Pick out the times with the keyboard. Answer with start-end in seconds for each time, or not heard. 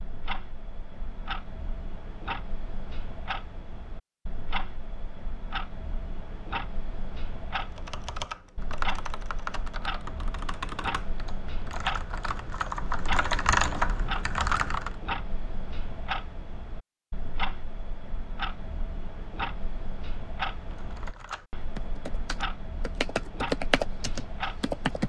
7.6-14.9, 20.7-25.0.